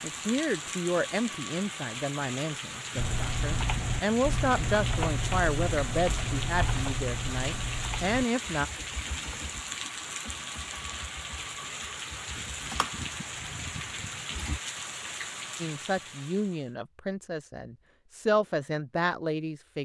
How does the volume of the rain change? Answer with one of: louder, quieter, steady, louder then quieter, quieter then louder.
steady.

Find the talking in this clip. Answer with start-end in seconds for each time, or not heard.
0.0-8.7, 15.6-19.7.